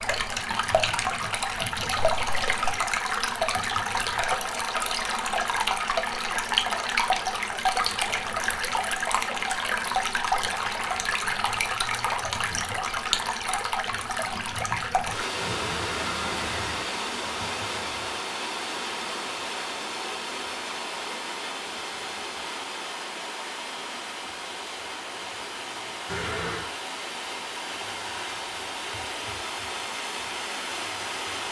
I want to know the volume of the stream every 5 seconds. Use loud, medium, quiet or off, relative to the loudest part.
loud, loud, loud, medium, medium, medium, medium.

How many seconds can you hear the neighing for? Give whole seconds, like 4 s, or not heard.
3 s.